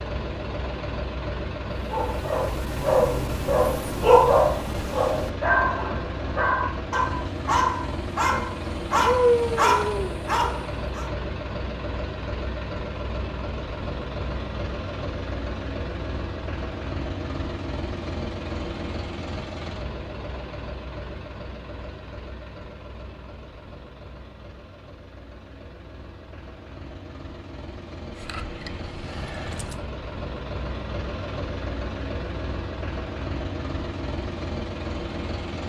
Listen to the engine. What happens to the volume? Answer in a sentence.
The loudness of the engine goes down, then up.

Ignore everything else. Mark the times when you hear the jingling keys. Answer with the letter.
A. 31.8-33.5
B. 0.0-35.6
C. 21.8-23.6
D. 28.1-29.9
D.